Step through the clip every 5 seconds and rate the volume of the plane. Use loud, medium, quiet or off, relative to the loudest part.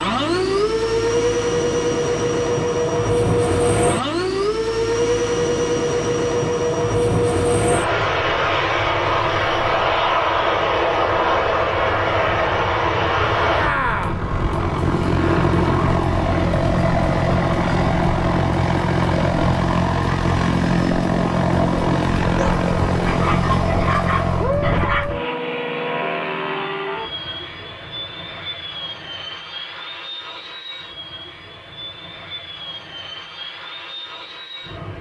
loud, loud, loud, loud, loud, medium, quiet.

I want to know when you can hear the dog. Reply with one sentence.
The dog can be heard from 22.2 to 25.1 s.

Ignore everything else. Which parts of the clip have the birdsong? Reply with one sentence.
The birdsong can't be heard in this clip.